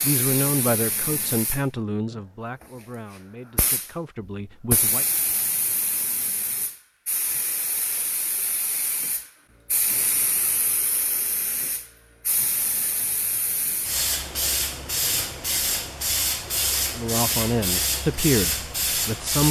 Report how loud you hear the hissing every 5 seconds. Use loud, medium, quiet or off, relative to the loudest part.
medium, medium, medium, loud.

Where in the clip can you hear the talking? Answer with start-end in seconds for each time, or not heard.
0.0-5.0, 16.9-19.4.